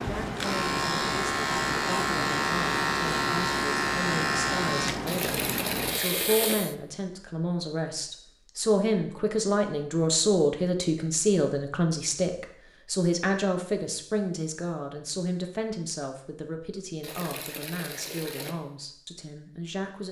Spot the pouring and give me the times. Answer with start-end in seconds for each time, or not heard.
5.0-6.5, 17.0-18.6.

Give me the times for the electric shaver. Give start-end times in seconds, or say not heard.
0.0-6.8.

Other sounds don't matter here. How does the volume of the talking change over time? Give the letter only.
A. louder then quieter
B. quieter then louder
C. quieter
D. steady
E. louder
A.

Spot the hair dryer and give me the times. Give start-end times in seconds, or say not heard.
not heard.